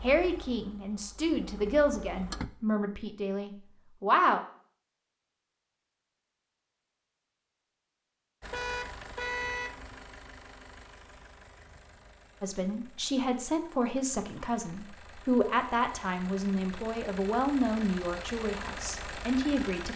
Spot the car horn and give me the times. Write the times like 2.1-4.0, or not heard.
8.5-9.7.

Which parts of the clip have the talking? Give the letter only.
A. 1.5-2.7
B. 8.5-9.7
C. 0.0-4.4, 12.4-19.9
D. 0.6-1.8
C.